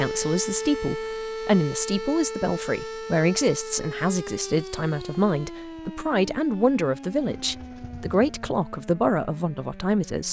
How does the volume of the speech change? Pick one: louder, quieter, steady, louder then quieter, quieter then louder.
steady.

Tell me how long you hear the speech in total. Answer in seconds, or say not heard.
10 s.